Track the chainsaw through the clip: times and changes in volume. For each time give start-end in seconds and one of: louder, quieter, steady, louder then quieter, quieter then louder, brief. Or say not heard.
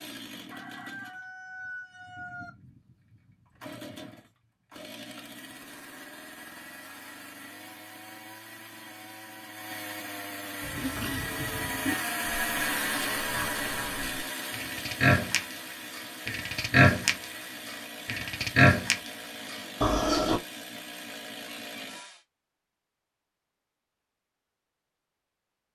0.0-22.2 louder then quieter.